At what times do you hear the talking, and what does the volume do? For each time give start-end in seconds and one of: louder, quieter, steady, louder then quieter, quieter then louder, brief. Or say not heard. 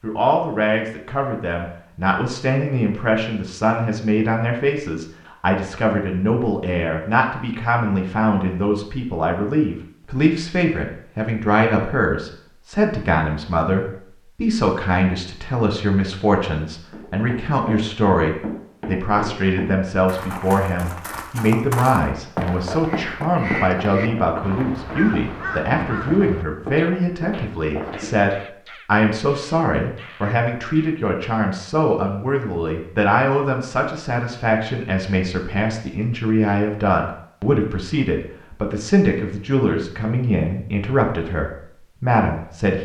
0.0-42.8 steady.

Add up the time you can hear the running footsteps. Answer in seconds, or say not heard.
11 s.